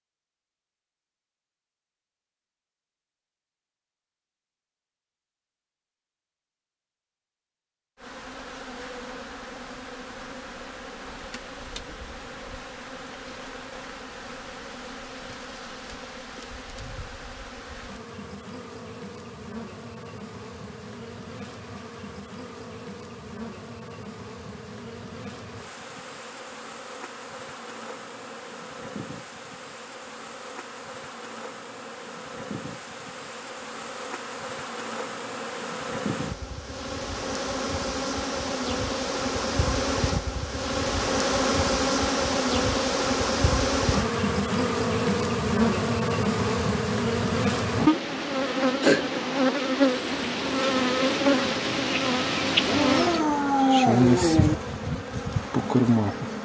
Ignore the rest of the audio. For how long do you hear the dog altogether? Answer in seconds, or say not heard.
2 s.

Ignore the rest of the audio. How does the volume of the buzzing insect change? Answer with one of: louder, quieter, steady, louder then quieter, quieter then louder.
louder.